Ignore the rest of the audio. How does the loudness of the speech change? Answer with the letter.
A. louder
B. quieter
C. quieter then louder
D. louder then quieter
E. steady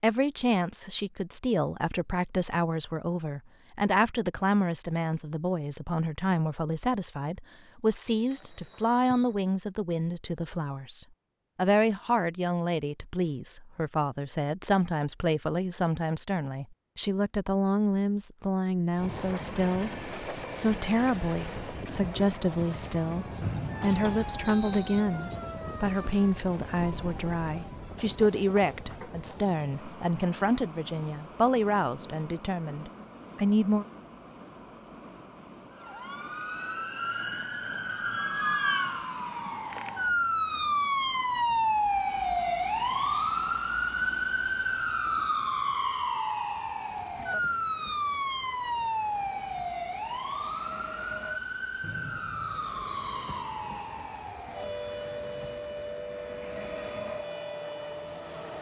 E.